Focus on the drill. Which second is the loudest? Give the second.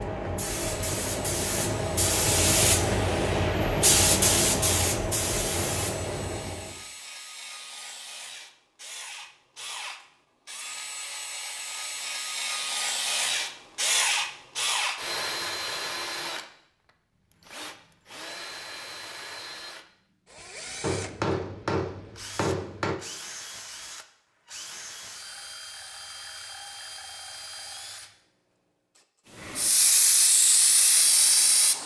14 s.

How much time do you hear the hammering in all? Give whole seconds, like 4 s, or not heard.
2 s.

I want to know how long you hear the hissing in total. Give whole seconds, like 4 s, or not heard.
9 s.